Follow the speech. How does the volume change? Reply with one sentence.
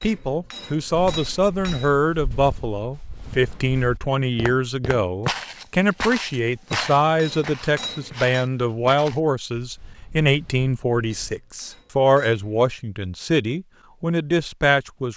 The volume of the speech stays about the same.